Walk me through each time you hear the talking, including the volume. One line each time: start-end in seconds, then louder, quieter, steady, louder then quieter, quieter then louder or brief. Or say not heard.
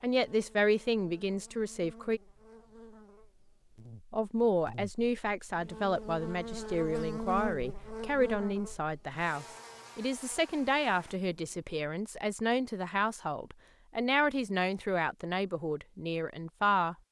0.0-2.2 brief
4.1-16.9 steady.